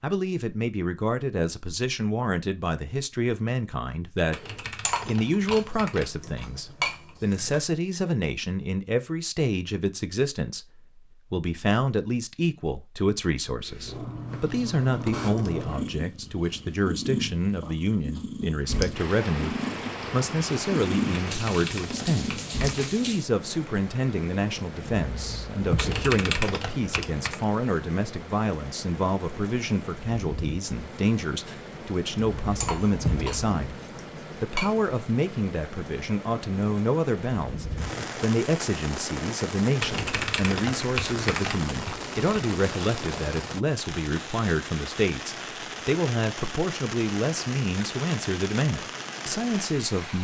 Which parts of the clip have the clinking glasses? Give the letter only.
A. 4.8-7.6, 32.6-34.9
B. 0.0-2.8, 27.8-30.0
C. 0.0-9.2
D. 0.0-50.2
A.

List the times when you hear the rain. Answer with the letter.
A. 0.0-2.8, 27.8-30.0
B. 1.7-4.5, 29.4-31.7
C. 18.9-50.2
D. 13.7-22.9
C.